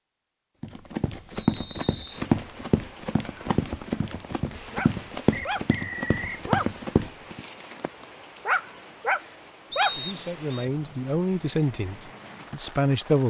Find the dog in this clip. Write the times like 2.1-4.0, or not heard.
4.7-10.1.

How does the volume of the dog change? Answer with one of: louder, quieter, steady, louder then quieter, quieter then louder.
quieter then louder.